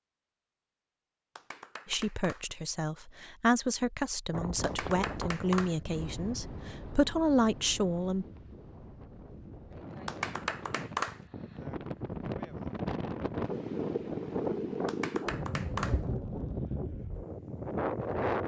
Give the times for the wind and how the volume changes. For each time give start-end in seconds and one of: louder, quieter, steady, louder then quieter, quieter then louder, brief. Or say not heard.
4.3-18.4 quieter then louder.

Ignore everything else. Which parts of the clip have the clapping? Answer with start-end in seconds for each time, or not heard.
1.4-2.5, 4.6-5.8, 10.1-11.2, 14.8-16.1.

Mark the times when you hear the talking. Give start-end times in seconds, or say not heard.
1.9-8.2.